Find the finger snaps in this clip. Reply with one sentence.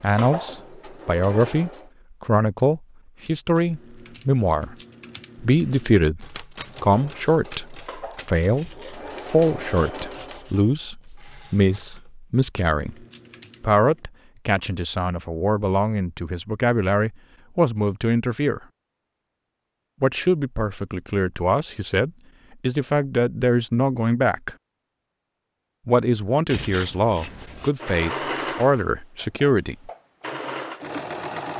The finger snaps can't be heard in this clip.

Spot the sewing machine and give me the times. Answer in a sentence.
The sewing machine can be heard from 0.0 to 1.9 s, from 6.7 to 10.5 s and from 27.6 to 31.5 s.